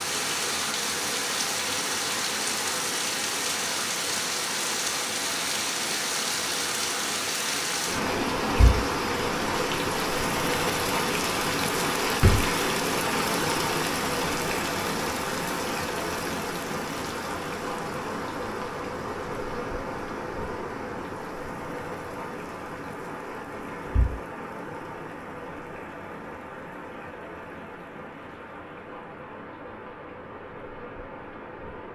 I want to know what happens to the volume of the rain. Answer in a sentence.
The loudness of the rain goes down.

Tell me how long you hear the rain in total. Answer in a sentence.
The rain can be heard for 32 seconds in total.